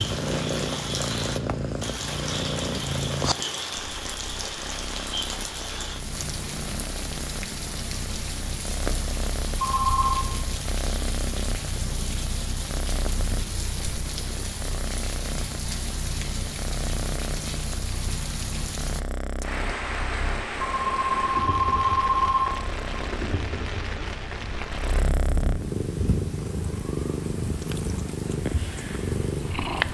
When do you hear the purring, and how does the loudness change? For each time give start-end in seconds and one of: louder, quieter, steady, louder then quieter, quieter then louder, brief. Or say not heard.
0.0-29.8 quieter then louder.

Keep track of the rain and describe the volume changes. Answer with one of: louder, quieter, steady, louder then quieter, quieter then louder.
steady.